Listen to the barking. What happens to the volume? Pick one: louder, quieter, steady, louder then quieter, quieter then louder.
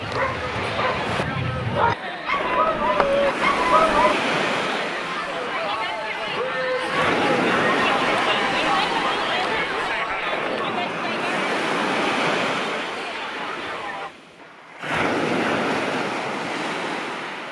louder.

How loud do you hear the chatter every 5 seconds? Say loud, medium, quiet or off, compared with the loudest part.
medium, loud, medium, off.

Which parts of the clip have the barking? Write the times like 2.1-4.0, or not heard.
0.0-4.2.